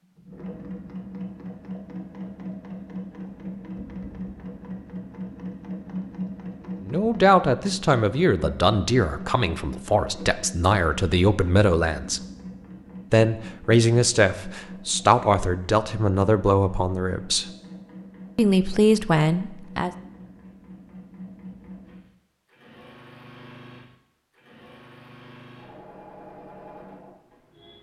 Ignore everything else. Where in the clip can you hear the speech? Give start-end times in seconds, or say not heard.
6.8-12.2, 13.1-17.4, 18.4-19.9.